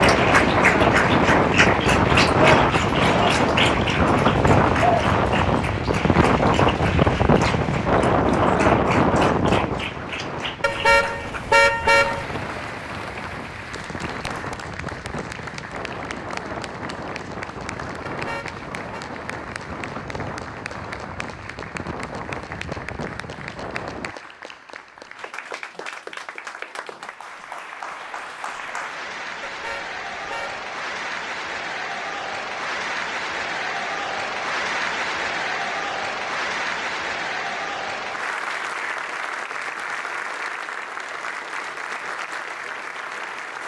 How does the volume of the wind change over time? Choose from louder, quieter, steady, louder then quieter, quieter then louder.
quieter.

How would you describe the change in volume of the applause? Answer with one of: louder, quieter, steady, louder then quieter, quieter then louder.
quieter then louder.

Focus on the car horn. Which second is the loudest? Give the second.
12 s.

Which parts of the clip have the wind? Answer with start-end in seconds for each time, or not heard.
0.0-24.1.